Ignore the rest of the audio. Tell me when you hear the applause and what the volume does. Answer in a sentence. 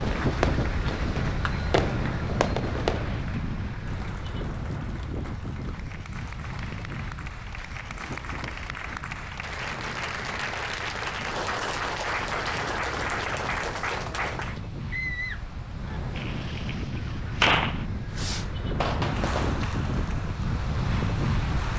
You can hear the applause from 0.0 to 14.6 s, getting quieter then louder; and briefly from 19.0 to 21.7 s.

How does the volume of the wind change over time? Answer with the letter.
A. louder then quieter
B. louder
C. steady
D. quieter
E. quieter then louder
E.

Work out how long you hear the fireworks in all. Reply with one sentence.
You can hear the fireworks for 7 seconds altogether.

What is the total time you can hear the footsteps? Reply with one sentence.
You can't hear the footsteps here.